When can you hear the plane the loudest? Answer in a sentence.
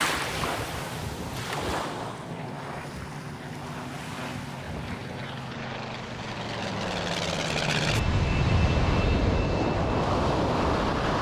The loudest moment of the plane is at 8 seconds.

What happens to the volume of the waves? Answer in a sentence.
The volume of the waves goes down, then up.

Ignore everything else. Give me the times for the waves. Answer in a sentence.
You can hear the waves from 0.0 to 11.1 s.